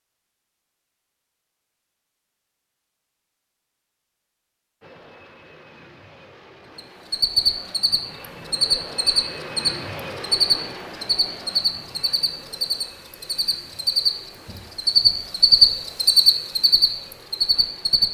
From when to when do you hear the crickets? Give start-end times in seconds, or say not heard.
6.8-18.0.